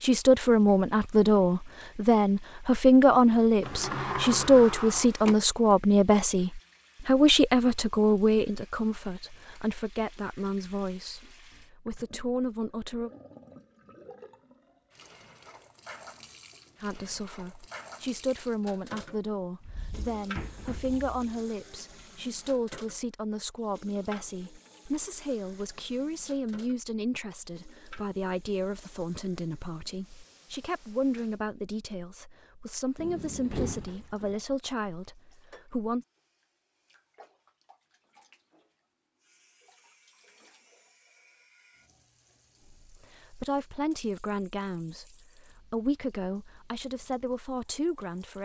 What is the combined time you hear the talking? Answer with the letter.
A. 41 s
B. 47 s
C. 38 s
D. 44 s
C.